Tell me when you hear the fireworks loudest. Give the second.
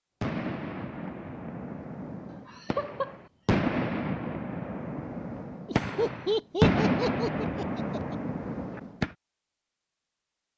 7 s.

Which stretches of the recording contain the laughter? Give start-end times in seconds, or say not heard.
2.3-3.2, 5.7-8.2.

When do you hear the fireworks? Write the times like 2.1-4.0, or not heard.
0.2-9.1.